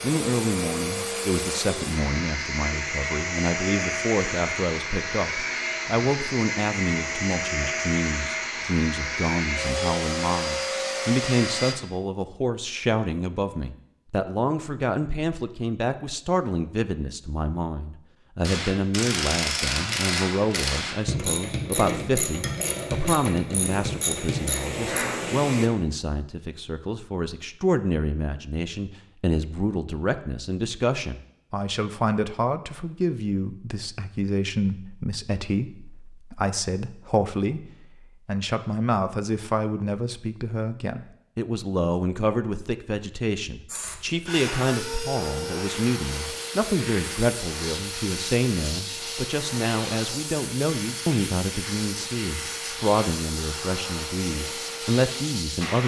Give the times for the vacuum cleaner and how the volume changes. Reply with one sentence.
The vacuum cleaner can be heard from 0.0 to 11.8 s, at a steady volume; briefly from 23.6 to 25.7 s; and from 43.6 to 55.8 s, at a steady volume.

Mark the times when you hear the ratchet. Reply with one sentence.
The ratchet can be heard from 18.4 to 25.1 s.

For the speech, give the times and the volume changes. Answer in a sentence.
You can hear the speech from 0.0 to 55.8 s, at a steady volume.